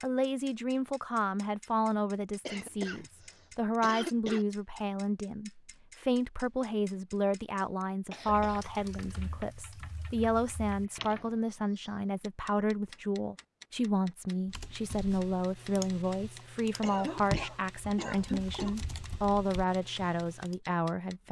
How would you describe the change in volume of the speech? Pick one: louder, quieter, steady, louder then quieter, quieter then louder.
steady.